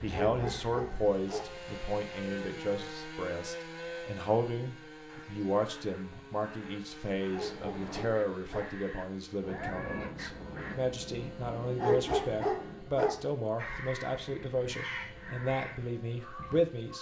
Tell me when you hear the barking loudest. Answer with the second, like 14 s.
12 s.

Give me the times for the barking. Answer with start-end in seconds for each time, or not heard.
0.1-1.6, 7.3-8.8, 11.8-13.3.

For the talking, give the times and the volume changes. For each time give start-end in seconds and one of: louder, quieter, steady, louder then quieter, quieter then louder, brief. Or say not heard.
0.0-16.9 steady.